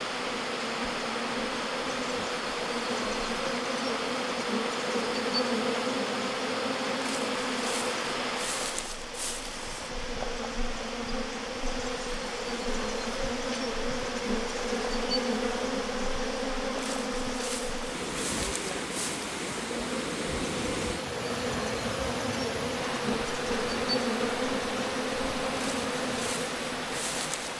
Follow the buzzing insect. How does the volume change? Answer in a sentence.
The loudness of the buzzing insect stays about the same.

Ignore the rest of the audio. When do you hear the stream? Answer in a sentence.
You can hear the stream from 0.0 to 27.5 s.